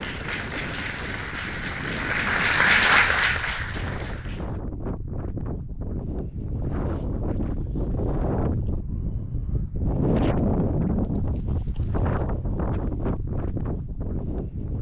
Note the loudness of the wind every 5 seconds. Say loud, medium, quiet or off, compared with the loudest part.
medium, loud, loud.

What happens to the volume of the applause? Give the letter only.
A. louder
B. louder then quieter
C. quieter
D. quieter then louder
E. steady
B.